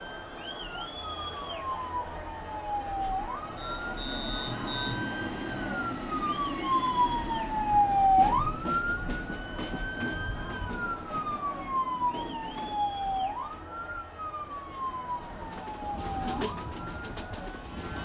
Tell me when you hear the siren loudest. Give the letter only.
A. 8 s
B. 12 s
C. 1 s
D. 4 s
A.